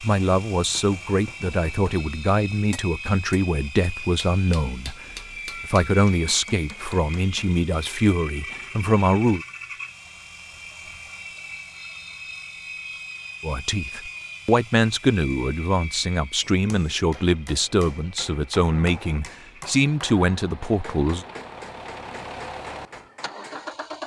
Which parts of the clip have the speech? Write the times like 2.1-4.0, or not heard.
0.0-9.4, 13.4-21.2.